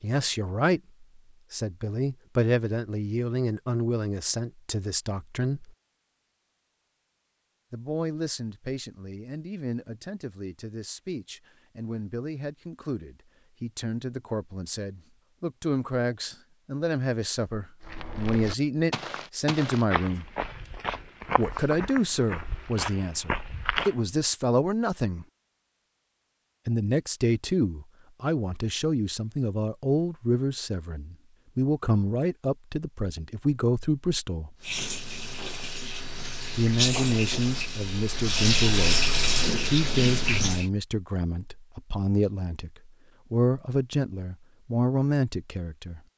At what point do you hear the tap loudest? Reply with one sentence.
The volume of the tap peaks at 39 seconds.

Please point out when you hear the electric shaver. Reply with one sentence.
The electric shaver can't be heard in this clip.